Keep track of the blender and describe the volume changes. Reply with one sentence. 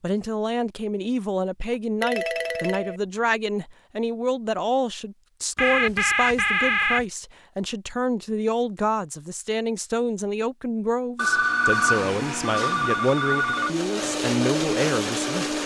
The loudness of the blender goes up.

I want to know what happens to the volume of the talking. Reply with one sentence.
The volume of the talking stays about the same.